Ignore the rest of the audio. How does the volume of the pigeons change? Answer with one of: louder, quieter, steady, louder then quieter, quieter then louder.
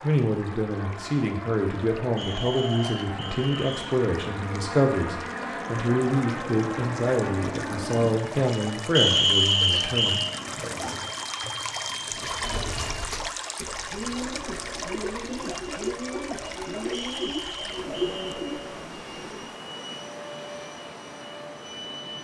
louder.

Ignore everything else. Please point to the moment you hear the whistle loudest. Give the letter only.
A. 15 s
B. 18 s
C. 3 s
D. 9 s
D.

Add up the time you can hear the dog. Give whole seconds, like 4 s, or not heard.
not heard.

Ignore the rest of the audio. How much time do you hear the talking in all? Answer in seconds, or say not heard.
11 s.